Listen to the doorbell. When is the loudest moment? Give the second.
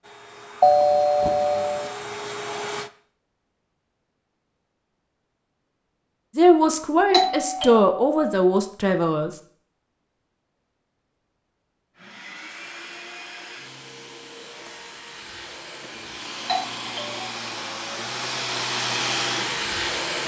1 s.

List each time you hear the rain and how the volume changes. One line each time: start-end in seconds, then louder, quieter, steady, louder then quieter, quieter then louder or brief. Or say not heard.
not heard.